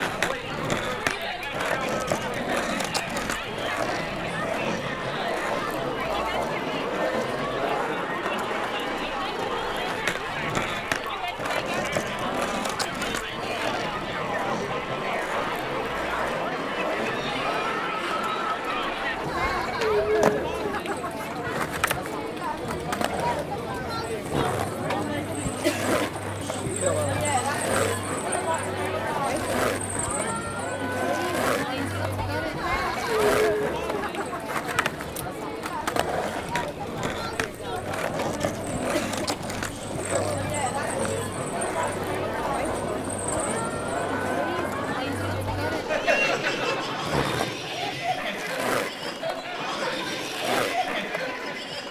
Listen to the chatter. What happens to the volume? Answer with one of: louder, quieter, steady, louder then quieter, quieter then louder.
steady.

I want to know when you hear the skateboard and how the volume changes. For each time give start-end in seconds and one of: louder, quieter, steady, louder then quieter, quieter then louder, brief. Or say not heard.
0.0-51.8 steady.